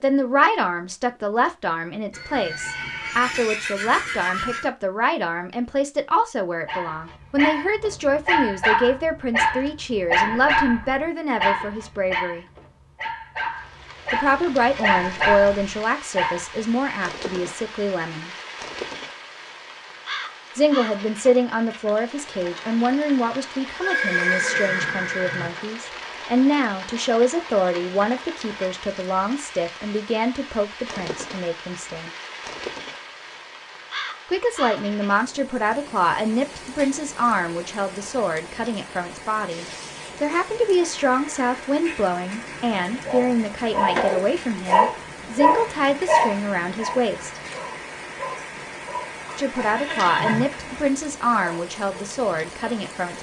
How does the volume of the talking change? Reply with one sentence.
The loudness of the talking stays about the same.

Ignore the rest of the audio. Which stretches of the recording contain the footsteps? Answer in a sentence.
You can't hear the footsteps here.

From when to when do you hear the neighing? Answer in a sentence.
You can hear the neighing from 2.1 to 4.7 s, from 23.8 to 25.5 s and from 49.2 to 50.5 s.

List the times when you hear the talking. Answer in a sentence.
The talking can be heard from 0.0 to 12.4 s, from 14.1 to 18.3 s, from 20.6 to 32.1 s, from 34.2 to 47.4 s and from 49.4 to 53.1 s.